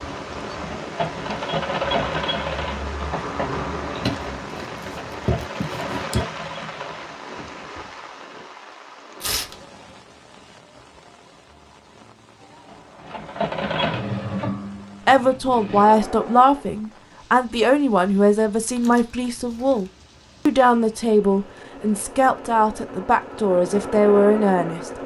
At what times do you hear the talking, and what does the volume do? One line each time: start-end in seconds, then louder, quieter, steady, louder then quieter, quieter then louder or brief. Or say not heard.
15.1-24.9 steady.